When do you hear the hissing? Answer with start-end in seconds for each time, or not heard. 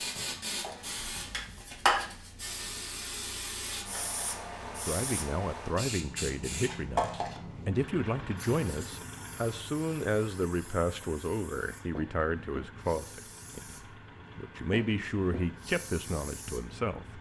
0.0-17.1.